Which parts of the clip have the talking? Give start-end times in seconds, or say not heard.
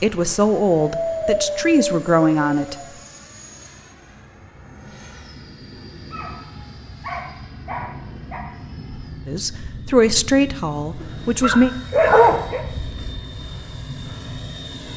0.0-2.8, 9.2-11.7.